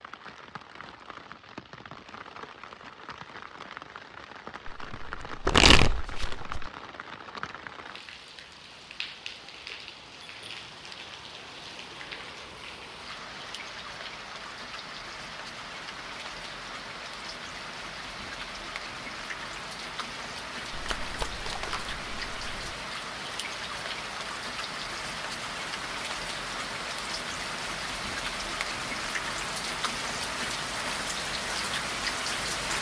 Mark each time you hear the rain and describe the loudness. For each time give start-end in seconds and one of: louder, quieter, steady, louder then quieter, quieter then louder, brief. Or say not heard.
0.0-32.7 louder.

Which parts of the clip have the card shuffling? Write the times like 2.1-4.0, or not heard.
4.7-6.7, 20.7-22.8.